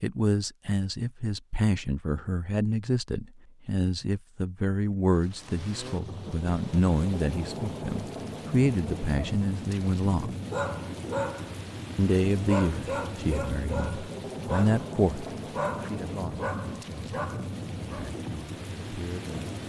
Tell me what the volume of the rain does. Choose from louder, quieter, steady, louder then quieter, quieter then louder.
steady.